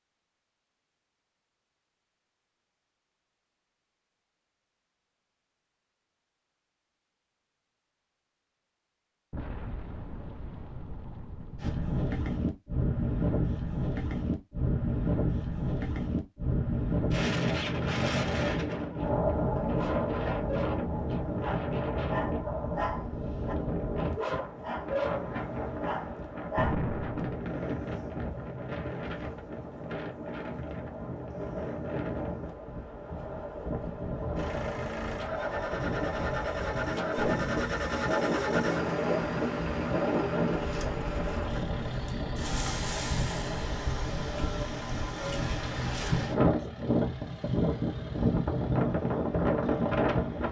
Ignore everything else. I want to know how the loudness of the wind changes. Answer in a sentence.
The volume of the wind goes down, then up.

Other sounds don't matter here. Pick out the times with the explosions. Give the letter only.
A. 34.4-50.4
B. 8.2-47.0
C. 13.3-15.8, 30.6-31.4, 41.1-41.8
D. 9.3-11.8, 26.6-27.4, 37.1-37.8
D.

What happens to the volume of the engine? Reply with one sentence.
The loudness of the engine goes down.